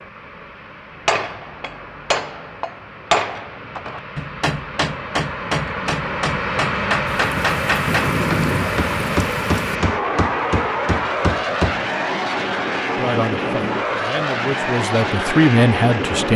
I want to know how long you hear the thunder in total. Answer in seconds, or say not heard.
3 s.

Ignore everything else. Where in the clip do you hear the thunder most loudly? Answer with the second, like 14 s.
8 s.